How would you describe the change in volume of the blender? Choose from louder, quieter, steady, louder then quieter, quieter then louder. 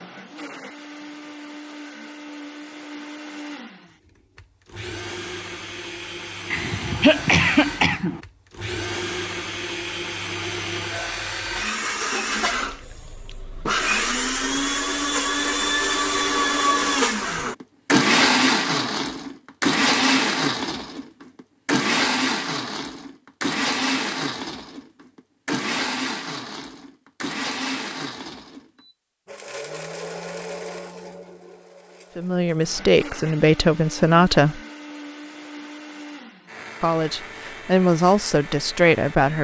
louder then quieter.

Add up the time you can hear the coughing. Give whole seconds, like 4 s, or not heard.
2 s.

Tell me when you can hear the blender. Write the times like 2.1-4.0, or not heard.
0.0-39.3.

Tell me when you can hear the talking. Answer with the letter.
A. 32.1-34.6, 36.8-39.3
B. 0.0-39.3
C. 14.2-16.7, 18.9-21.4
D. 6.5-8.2
A.